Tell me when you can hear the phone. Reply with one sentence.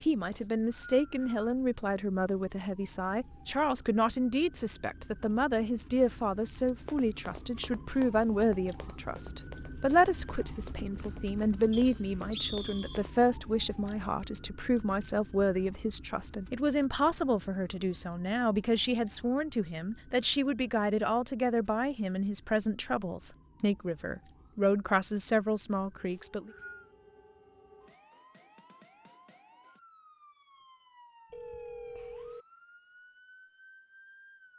You can hear the phone from 31.3 to 32.5 s.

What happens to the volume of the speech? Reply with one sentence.
The loudness of the speech stays about the same.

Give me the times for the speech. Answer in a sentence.
You can hear the speech from 0.0 to 26.5 s.